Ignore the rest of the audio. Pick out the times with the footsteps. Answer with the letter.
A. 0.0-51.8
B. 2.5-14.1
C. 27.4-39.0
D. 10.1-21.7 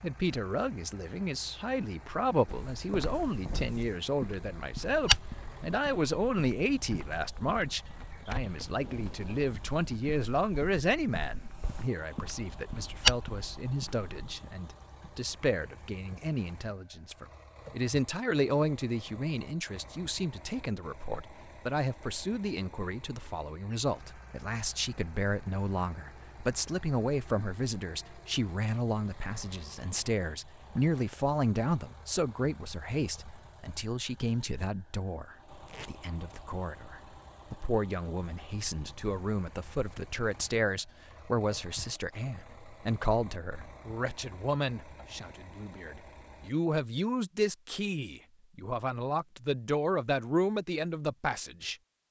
B.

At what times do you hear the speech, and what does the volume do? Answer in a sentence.
The speech can be heard from 0.0 to 51.8 s, at a steady volume.